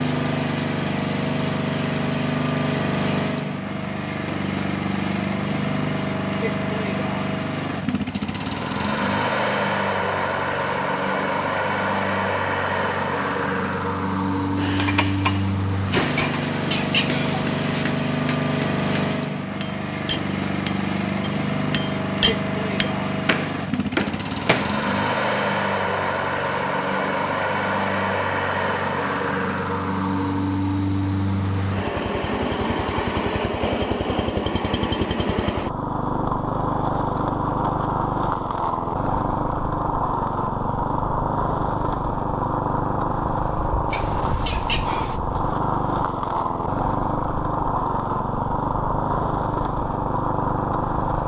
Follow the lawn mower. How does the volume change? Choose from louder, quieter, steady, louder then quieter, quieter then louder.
steady.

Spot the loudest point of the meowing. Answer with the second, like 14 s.
17 s.